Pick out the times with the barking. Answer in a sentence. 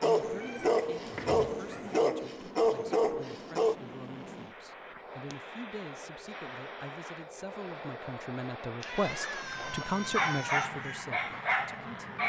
The barking can be heard from 0.0 to 3.8 s and from 9.6 to 12.2 s.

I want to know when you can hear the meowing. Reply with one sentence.
The meowing can be heard from 0.1 to 2.0 s and from 8.8 to 10.7 s.